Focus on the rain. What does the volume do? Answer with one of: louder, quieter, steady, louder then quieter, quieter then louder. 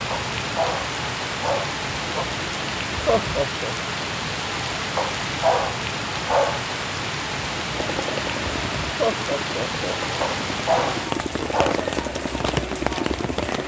steady.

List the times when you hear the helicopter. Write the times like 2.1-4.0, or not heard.
7.8-13.6.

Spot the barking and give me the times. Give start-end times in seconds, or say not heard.
0.1-2.2, 5.0-6.6, 10.2-11.8.